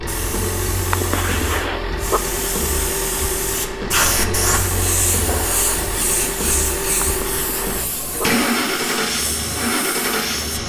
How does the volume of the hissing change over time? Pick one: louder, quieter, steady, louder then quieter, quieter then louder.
louder then quieter.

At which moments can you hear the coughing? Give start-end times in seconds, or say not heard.
0.9-2.2, 7.0-8.3.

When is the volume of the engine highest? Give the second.
9 s.